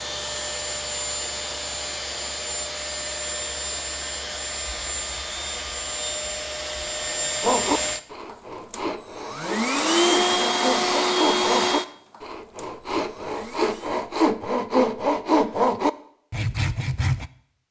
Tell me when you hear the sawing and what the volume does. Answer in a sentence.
The sawing can be heard from 7.4 to 17.3 s, getting louder.